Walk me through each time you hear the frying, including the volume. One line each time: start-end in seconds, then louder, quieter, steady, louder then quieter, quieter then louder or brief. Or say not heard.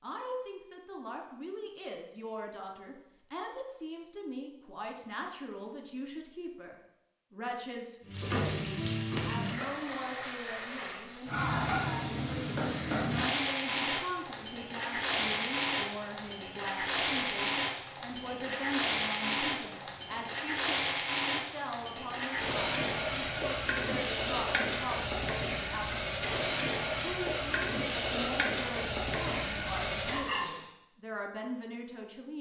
8.1-30.7 steady.